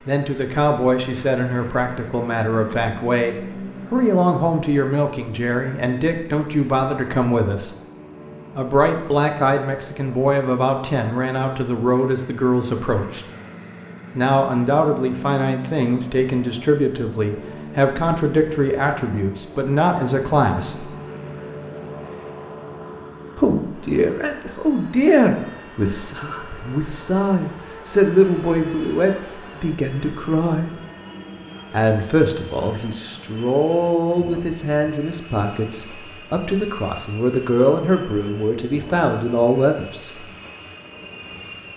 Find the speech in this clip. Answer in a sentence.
You can hear the speech from 0.1 to 7.8 s, from 8.6 to 13.2 s, from 14.2 to 20.9 s, from 23.4 to 30.7 s and from 31.7 to 40.2 s.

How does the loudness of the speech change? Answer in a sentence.
The loudness of the speech stays about the same.